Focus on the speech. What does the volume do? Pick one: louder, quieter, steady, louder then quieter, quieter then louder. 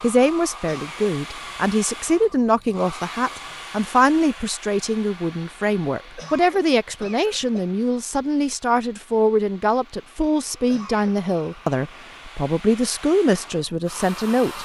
steady.